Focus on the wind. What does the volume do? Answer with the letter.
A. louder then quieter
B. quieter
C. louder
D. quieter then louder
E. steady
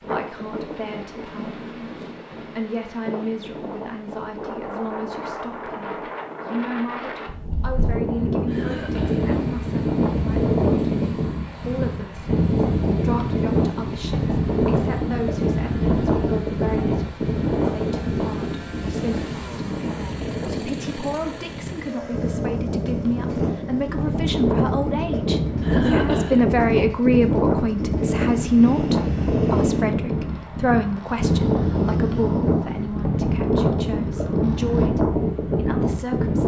C.